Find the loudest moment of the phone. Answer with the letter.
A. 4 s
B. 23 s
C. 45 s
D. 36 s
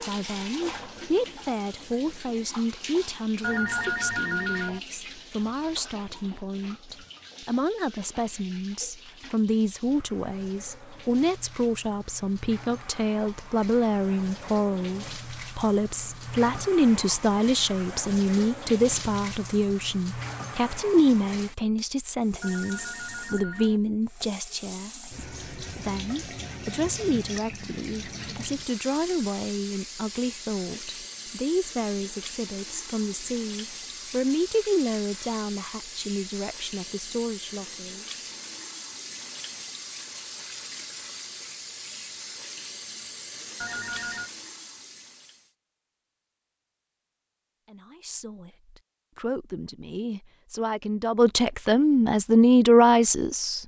A.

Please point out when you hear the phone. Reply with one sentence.
You can hear the phone from 3.4 to 4.8 s, from 22.4 to 23.8 s and from 43.6 to 44.3 s.